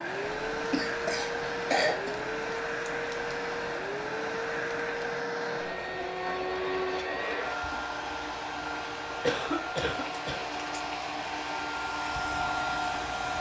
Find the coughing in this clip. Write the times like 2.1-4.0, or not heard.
0.7-2.1, 9.2-10.5.